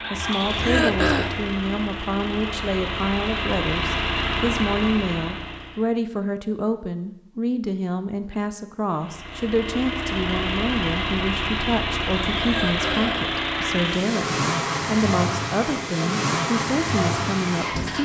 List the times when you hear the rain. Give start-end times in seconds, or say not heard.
not heard.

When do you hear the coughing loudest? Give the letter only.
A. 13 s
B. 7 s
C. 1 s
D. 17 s
C.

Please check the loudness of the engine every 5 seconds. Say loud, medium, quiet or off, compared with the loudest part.
loud, medium, loud, loud.